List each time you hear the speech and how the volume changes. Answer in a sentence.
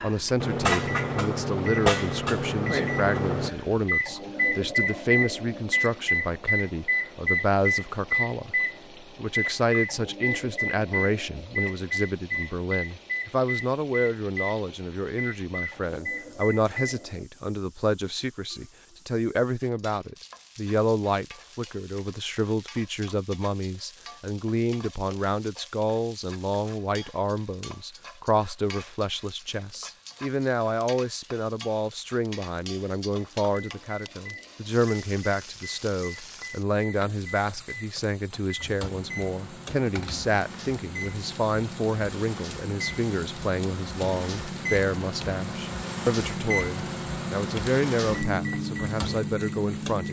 You can hear the speech from 0.0 to 50.0 s, at a steady volume.